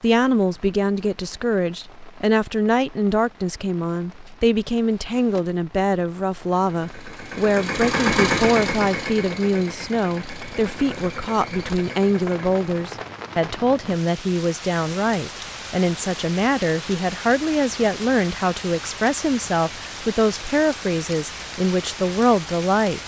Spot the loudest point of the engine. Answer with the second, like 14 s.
8 s.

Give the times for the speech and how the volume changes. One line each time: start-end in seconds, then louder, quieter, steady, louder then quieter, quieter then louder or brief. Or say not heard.
0.0-23.0 steady.